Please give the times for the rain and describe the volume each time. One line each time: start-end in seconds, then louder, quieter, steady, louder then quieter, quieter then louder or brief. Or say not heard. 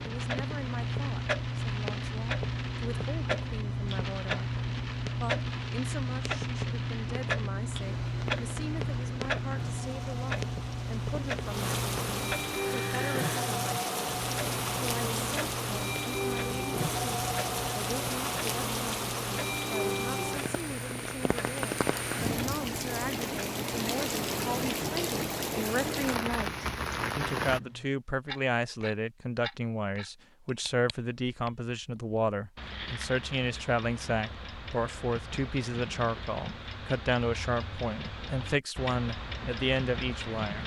0.0-27.6 louder.